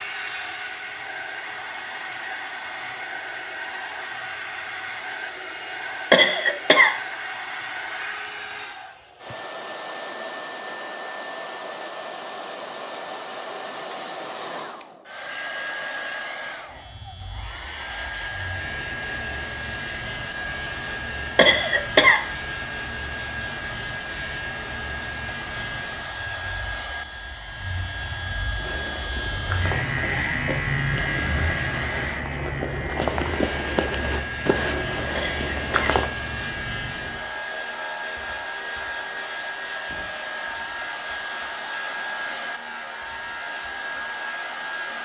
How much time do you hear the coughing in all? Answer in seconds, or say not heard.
3 s.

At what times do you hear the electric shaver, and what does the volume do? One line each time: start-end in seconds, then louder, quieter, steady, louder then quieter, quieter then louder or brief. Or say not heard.
16.6-45.0 louder then quieter.